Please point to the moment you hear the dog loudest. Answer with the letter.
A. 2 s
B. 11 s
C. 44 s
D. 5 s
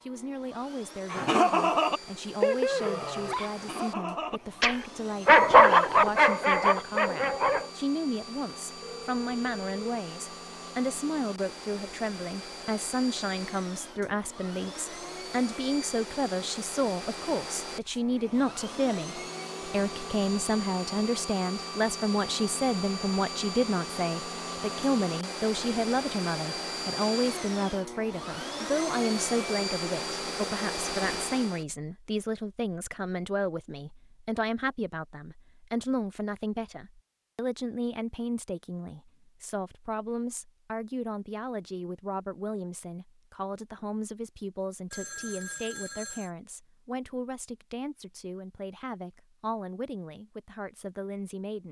D.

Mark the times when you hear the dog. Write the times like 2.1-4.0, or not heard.
1.1-7.7.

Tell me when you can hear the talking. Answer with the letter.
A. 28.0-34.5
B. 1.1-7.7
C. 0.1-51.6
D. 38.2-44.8
C.